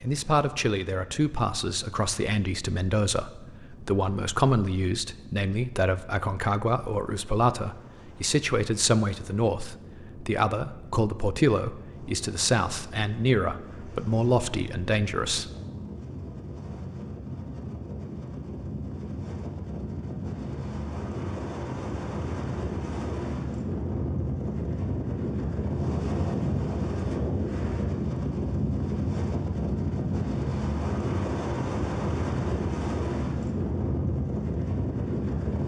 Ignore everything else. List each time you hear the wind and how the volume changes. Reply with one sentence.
You can hear the wind from 0.0 to 35.6 s, getting louder.